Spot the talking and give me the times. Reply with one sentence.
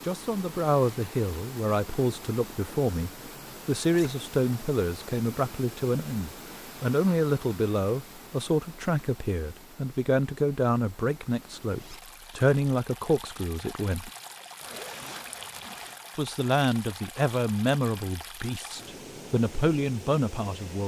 The talking can be heard from 0.0 to 14.1 s and from 16.1 to 20.8 s.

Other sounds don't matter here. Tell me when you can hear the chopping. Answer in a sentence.
You can't hear the chopping here.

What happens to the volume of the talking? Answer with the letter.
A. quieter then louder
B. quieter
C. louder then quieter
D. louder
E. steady
E.